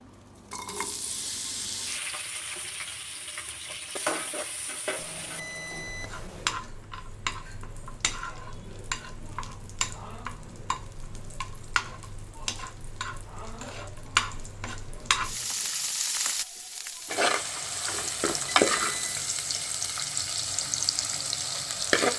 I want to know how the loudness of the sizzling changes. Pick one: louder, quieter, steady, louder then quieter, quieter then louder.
louder.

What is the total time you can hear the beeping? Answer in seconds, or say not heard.
2 s.